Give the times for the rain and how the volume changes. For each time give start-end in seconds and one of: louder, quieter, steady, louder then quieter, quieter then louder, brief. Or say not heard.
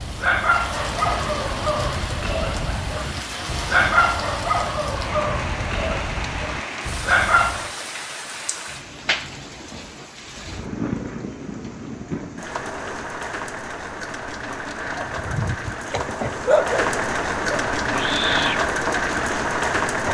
0.0-20.0 louder.